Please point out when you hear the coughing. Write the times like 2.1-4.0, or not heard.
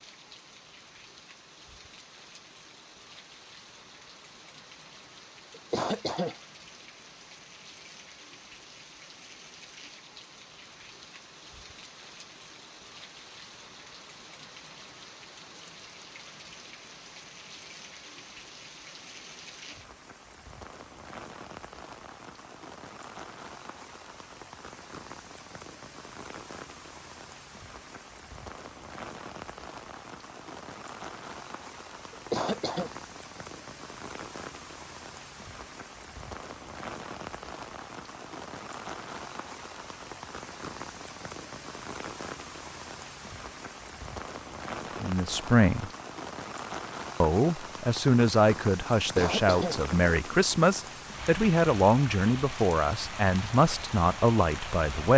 5.5-6.3, 32.1-32.9, 49.0-49.8.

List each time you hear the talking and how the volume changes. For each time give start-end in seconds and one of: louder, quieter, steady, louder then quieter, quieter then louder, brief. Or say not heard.
45.0-45.9 brief
47.2-55.1 steady.